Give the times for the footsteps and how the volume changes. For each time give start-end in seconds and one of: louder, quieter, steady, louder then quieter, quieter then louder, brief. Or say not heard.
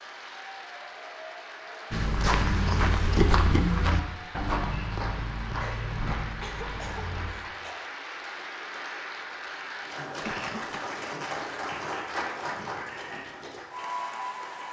1.9-7.3 quieter.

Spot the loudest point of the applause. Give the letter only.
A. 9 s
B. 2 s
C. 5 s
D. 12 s
D.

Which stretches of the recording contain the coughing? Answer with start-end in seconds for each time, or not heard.
2.2-3.2, 5.6-7.9, 10.2-10.8.